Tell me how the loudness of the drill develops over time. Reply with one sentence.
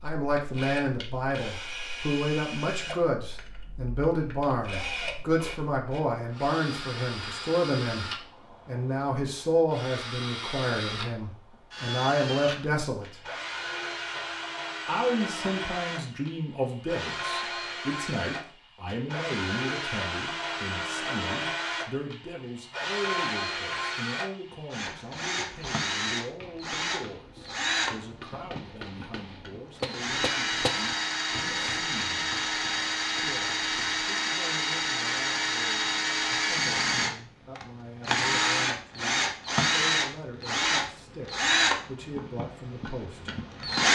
The loudness of the drill goes up.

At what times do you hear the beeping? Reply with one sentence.
You can't hear the beeping here.